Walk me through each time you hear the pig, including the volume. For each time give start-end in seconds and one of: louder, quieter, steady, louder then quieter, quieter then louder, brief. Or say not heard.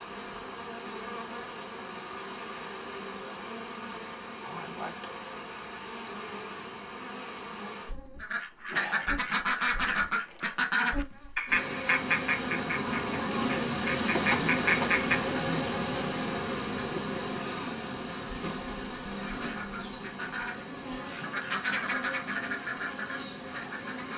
not heard.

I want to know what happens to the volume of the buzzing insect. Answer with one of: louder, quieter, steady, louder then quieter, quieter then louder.
louder then quieter.